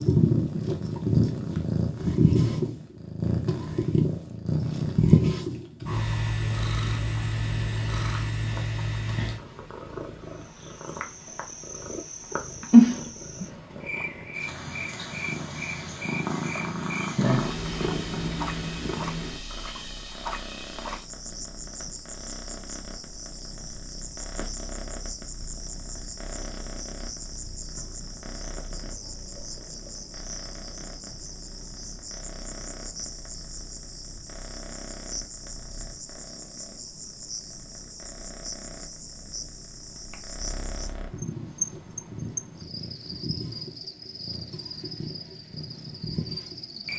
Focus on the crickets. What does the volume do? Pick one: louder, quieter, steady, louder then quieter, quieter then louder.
steady.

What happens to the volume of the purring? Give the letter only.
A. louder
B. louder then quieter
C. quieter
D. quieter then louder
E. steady
D.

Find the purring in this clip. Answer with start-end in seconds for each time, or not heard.
0.0-46.9.